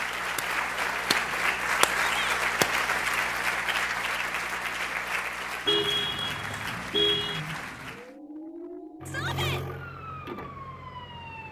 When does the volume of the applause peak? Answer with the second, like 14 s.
2 s.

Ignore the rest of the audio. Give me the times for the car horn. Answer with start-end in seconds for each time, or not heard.
5.7-7.4.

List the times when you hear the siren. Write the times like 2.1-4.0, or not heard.
5.7-11.4.